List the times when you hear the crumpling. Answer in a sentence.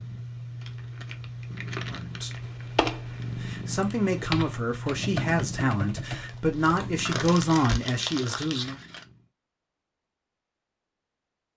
The crumpling can be heard from 0.6 to 3.4 s and from 6.2 to 9.1 s.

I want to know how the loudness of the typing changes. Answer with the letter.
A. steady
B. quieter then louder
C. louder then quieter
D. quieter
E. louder
D.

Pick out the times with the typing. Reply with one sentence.
You can hear the typing from 2.4 to 7.8 s.